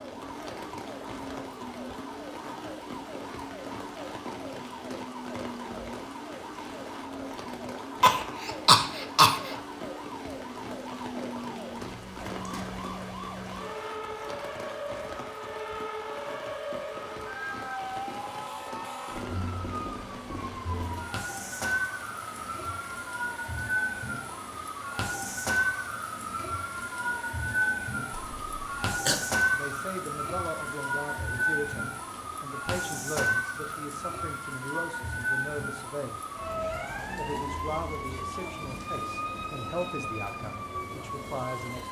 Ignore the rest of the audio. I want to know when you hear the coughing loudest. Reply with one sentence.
The volume of the coughing peaks at 9 seconds.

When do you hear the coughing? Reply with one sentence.
You can hear the coughing from 8.0 to 9.6 s and from 28.1 to 29.2 s.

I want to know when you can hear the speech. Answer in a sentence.
The speech can be heard from 29.5 to 36.2 s and from 37.1 to 41.8 s.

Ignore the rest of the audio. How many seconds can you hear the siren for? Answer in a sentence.
The siren can be heard for 42 seconds in total.